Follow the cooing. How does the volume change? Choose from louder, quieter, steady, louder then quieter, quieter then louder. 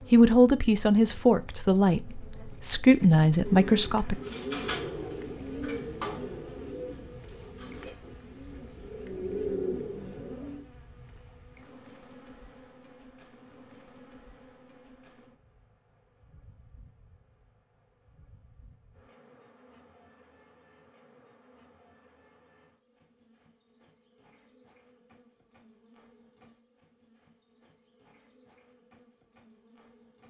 quieter then louder.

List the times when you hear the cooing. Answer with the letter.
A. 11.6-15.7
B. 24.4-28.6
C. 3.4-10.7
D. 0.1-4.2
C.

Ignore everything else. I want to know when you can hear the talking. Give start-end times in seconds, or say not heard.
0.1-4.2.